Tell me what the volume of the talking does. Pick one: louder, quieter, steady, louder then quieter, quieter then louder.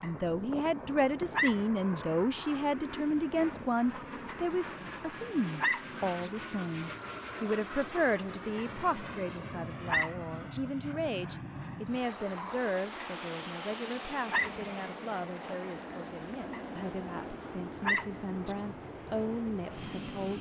quieter.